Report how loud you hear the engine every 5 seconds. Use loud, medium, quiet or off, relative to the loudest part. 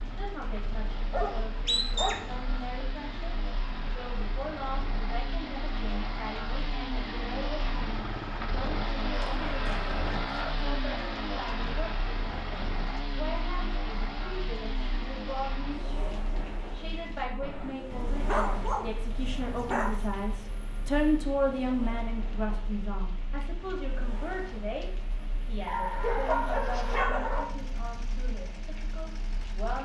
medium, loud, loud, medium, quiet, quiet.